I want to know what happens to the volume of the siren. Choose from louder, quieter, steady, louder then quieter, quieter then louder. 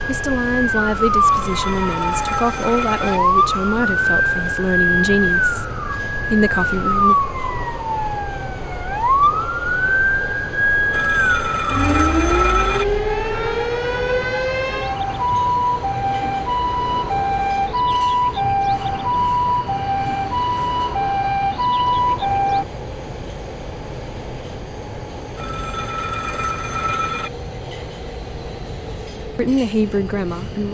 steady.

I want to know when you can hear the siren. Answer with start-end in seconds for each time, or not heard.
0.0-22.6.